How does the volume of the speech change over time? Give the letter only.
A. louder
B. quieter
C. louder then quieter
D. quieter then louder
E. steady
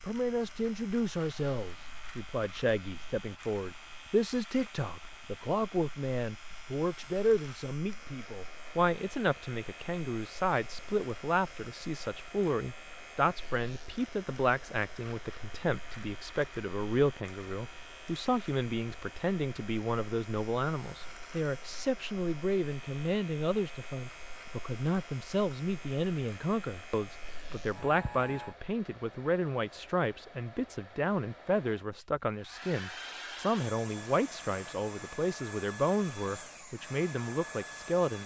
E.